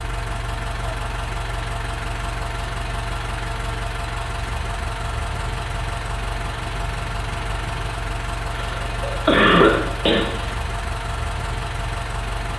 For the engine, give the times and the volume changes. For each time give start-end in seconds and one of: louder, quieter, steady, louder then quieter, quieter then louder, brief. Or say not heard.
0.0-12.5 steady.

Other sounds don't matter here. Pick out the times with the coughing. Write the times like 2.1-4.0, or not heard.
8.5-10.5.